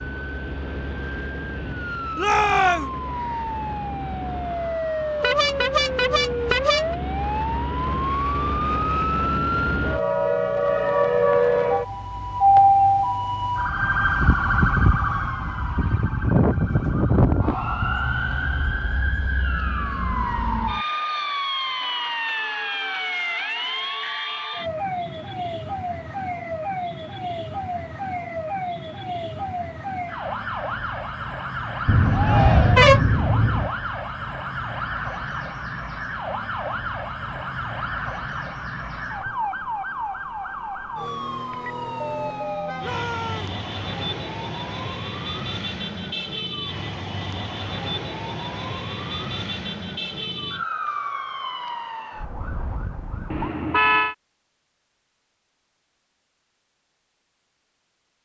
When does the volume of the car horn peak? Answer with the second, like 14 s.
33 s.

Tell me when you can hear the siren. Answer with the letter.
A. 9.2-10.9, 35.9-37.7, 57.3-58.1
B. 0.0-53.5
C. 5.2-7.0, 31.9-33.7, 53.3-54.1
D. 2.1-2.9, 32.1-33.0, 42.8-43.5
B.